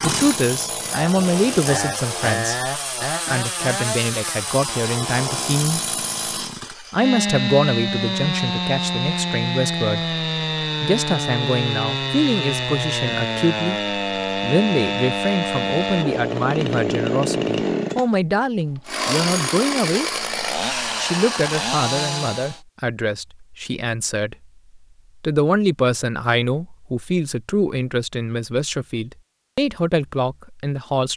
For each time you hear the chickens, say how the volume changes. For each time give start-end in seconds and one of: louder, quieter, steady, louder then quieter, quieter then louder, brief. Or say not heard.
not heard.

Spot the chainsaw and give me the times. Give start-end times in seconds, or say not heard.
0.0-22.6.